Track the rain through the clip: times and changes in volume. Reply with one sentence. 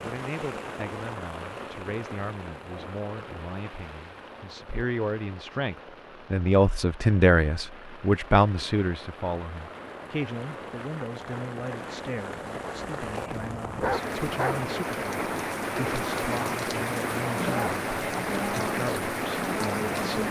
The rain can be heard from 0.0 to 20.2 s, getting quieter then louder.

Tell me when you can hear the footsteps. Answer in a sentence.
You can't hear the footsteps here.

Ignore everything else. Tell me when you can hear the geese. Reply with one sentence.
The geese can't be heard in this clip.